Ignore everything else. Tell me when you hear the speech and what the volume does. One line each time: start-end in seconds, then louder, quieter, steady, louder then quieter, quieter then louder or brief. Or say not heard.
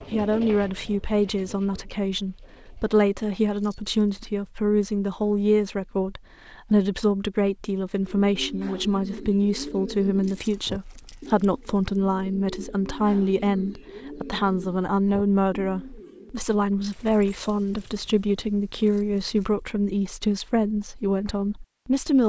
0.0-22.2 steady.